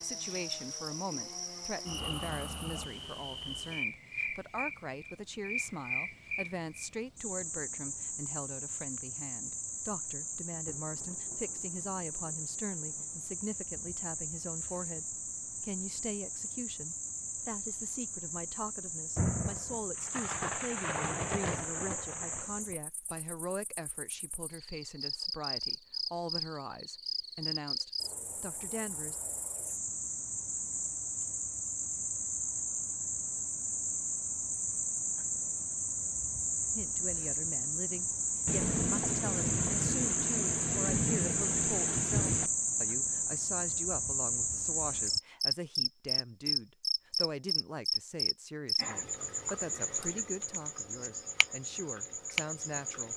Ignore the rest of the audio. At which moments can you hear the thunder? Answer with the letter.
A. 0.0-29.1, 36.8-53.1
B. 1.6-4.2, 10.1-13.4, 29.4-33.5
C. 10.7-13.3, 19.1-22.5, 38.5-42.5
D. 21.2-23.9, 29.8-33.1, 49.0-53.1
C.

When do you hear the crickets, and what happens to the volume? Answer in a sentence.
The crickets can be heard from 0.0 to 53.1 s, getting louder.